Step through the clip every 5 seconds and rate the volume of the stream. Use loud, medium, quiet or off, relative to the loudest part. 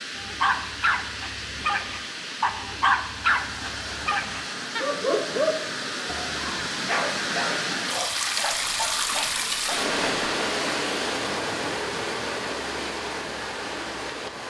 medium, loud, loud.